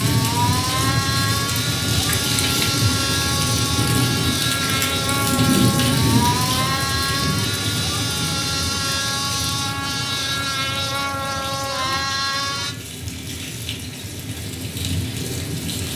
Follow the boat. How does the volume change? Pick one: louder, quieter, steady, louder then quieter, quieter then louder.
steady.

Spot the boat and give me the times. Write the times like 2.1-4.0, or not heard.
0.0-12.8.